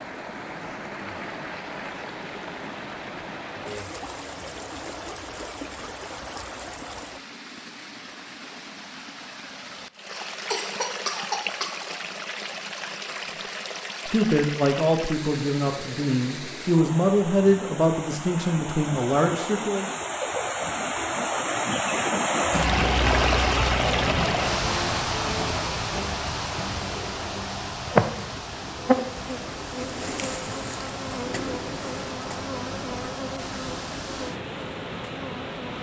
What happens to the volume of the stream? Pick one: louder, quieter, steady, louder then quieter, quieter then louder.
louder then quieter.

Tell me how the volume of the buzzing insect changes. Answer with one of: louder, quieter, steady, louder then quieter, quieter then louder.
quieter.